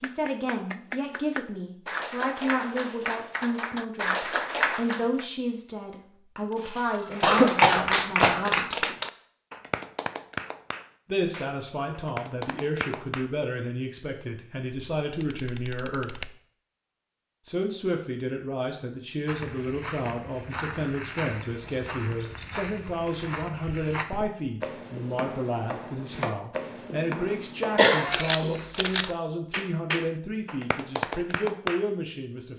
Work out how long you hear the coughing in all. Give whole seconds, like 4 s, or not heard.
2 s.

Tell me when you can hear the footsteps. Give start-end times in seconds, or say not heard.
19.2-27.9.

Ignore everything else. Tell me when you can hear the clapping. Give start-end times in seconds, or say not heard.
0.0-5.2, 7.1-13.2, 28.5-31.9.